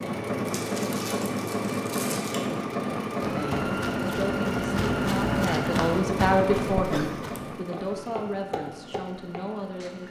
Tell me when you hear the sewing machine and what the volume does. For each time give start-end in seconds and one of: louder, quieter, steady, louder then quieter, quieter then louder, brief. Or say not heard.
0.0-10.0 quieter.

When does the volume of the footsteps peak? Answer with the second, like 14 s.
5 s.